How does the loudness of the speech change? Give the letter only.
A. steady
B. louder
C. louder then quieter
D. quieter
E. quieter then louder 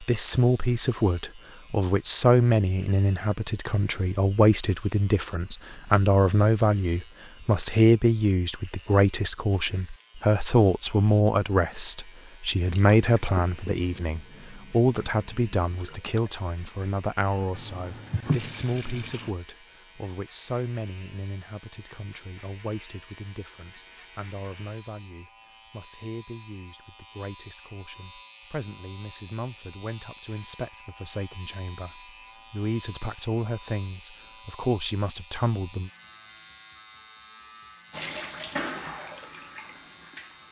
E.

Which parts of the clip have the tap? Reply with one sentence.
You can hear the tap from 12.7 to 19.4 s and from 37.9 to 40.4 s.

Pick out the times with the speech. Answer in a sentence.
The speech can be heard from 0.0 to 35.9 s.